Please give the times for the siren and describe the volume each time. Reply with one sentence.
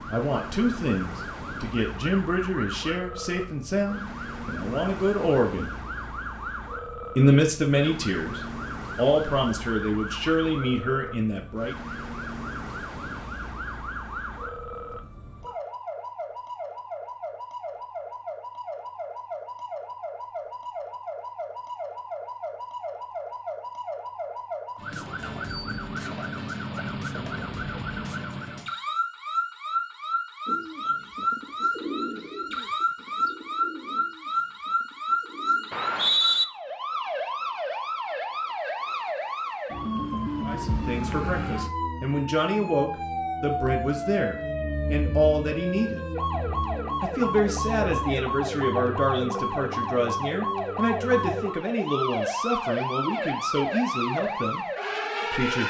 The siren can be heard from 0.0 to 55.6 s, getting louder.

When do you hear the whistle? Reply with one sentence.
The whistle can be heard from 35.7 to 36.5 s.